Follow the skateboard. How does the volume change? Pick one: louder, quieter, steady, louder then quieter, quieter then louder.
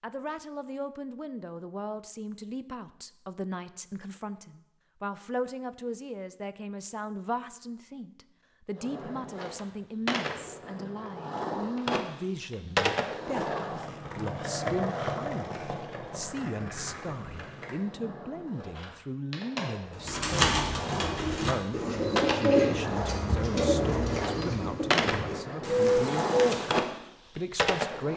quieter then louder.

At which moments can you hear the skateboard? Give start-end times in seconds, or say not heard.
8.8-28.1.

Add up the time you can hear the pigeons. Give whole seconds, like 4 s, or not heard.
7 s.